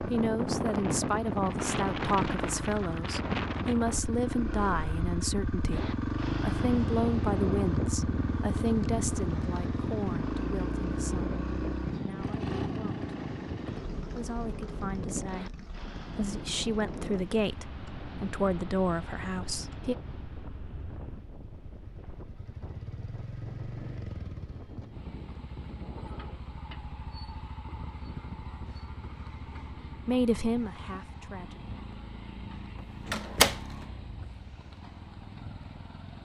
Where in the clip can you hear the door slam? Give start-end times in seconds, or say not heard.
33.0-33.6.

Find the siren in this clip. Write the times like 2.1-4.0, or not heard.
not heard.